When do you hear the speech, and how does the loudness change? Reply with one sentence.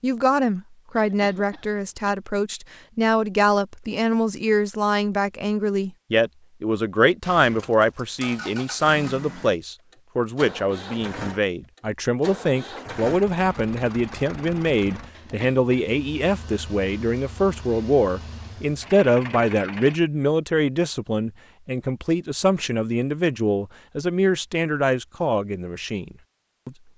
You can hear the speech from 0.0 to 26.8 s, at a steady volume.